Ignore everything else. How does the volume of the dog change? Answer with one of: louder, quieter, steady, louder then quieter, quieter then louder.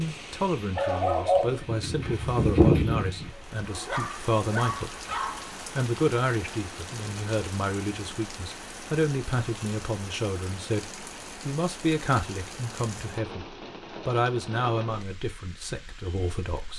quieter.